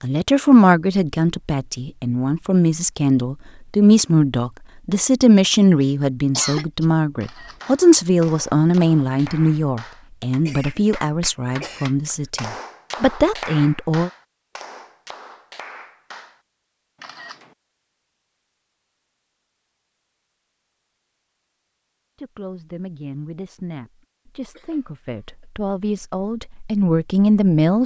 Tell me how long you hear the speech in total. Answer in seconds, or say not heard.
20 s.